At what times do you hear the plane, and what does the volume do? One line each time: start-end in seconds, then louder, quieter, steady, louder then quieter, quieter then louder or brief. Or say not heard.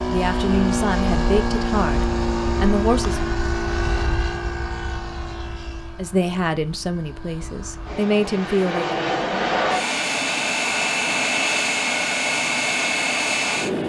0.0-13.8 quieter then louder.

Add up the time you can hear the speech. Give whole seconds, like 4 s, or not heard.
6 s.